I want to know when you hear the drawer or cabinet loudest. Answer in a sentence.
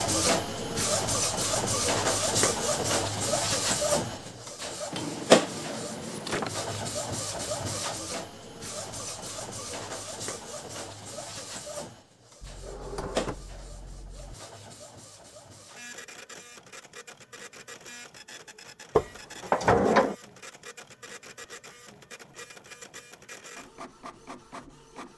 The loudest moment of the drawer or cabinet is at 20 seconds.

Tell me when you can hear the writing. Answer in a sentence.
The writing can't be heard in this clip.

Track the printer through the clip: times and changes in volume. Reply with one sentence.
The printer can be heard from 0.0 to 25.1 s, getting quieter.